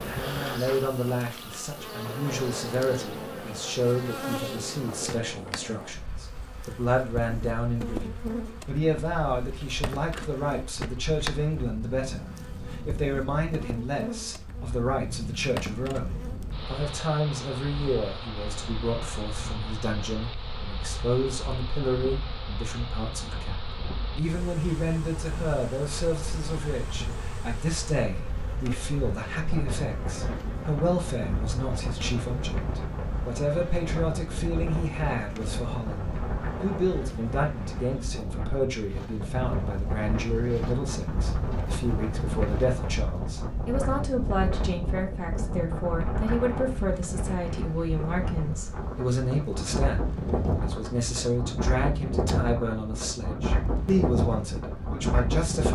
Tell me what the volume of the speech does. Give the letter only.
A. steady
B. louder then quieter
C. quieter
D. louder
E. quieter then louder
A.